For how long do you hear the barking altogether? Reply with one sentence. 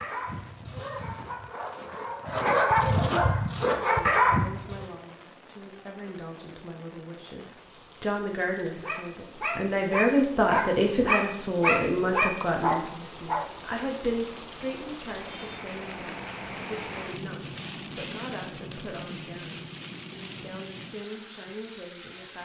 The barking can be heard for 10 seconds in total.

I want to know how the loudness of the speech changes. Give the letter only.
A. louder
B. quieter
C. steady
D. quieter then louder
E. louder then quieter
E.